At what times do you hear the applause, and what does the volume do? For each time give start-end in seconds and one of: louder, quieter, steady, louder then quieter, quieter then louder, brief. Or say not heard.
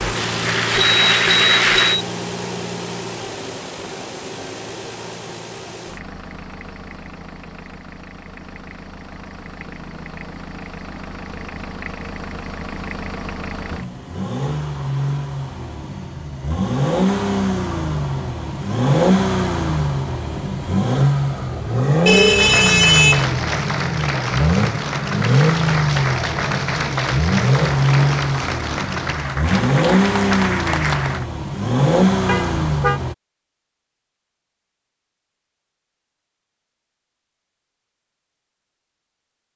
0.0-2.0 brief
22.4-31.2 steady.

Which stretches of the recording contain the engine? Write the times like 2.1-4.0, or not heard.
0.0-33.1.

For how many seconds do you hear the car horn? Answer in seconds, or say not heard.
3 s.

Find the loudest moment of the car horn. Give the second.
23 s.